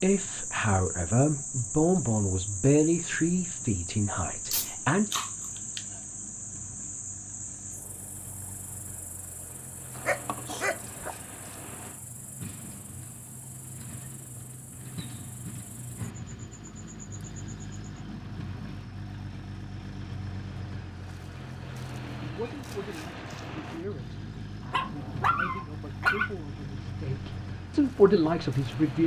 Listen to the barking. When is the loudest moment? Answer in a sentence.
The loudest moment of the barking is at 26 seconds.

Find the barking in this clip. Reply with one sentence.
You can hear the barking from 4.5 to 5.8 s, from 9.9 to 11.2 s and from 24.7 to 26.3 s.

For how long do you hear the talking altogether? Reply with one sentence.
You can hear the talking for 12 seconds altogether.